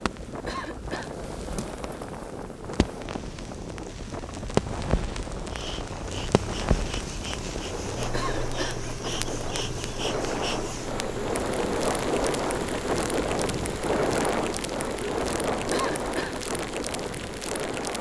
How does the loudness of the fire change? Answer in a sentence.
The loudness of the fire goes up, then down.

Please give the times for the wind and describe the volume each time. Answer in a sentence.
You can hear the wind from 0.0 to 17.9 s, getting louder.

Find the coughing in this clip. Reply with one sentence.
You can hear the coughing from 0.5 to 1.1 s, from 8.1 to 8.8 s and from 15.7 to 16.4 s.